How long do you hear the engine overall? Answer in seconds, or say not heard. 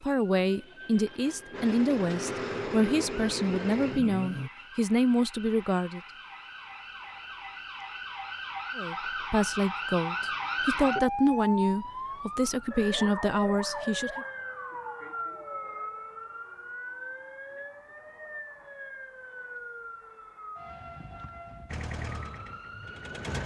6 s.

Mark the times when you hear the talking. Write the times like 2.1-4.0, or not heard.
0.0-6.0, 8.8-14.2.